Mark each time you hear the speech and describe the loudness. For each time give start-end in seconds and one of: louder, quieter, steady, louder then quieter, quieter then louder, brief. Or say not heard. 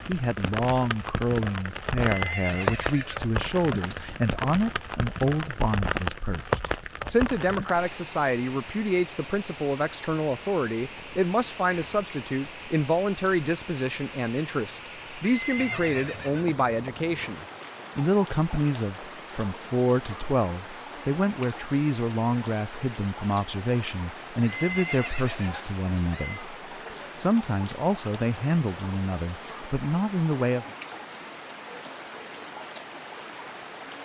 0.1-30.6 steady.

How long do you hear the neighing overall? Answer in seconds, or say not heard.
5 s.